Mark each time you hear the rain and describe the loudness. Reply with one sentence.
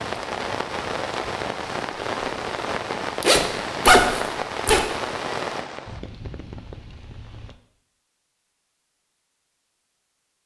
The rain can be heard from 0.0 to 7.6 s, getting quieter.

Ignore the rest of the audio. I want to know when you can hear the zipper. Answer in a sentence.
The zipper can be heard from 3.2 to 4.8 s.